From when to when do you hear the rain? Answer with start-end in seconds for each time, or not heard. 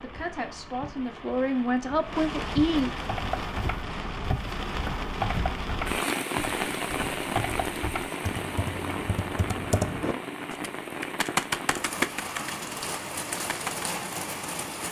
0.0-14.8.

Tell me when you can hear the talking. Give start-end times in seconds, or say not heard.
0.0-2.9.